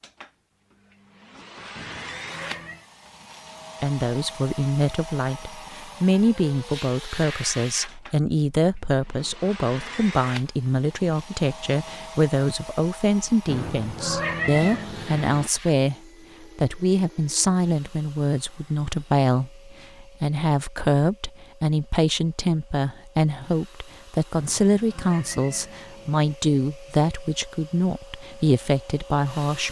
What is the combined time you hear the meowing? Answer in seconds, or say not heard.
5 s.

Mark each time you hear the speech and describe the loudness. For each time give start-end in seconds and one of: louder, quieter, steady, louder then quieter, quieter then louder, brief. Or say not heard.
3.8-29.6 steady.